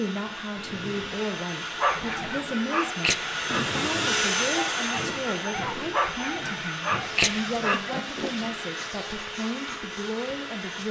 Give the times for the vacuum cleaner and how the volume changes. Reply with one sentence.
You can hear the vacuum cleaner from 0.0 to 10.8 s, getting louder then quieter.